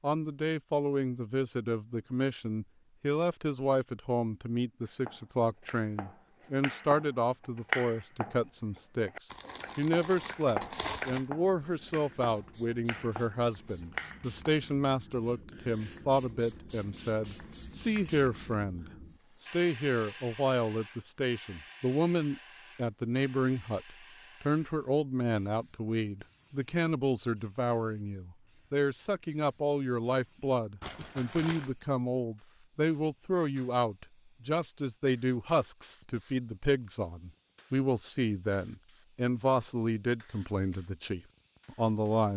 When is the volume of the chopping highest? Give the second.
8 s.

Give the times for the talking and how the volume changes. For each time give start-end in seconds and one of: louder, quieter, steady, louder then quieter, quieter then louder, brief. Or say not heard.
0.0-42.3 steady.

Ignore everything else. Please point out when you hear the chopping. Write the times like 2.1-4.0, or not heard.
4.8-14.3.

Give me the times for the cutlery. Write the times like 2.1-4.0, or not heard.
not heard.